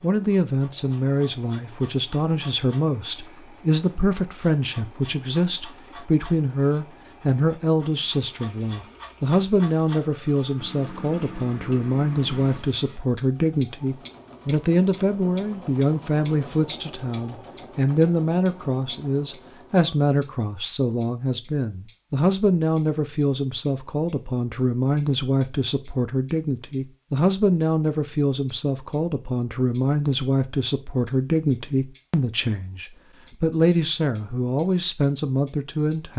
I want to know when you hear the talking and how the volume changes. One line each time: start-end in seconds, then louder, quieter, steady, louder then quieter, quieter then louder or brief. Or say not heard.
0.0-36.1 steady.